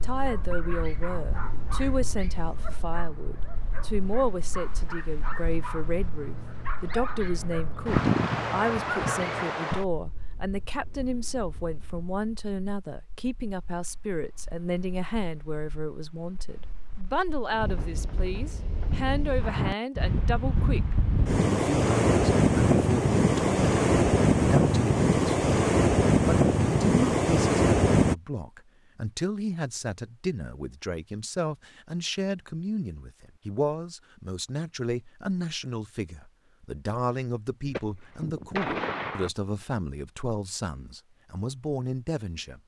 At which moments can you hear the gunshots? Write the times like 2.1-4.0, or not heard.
17.5-19.1, 37.6-39.3.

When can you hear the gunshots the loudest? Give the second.
39 s.